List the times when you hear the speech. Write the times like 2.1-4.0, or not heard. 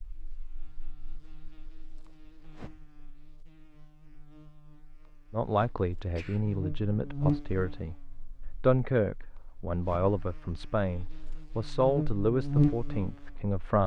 5.3-13.8.